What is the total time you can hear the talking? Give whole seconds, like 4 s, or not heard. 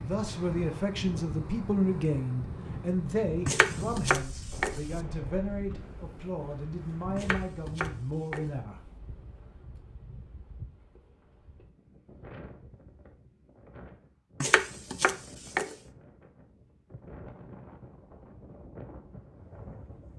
9 s.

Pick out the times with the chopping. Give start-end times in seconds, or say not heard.
3.5-4.8, 7.2-8.5, 14.4-15.8.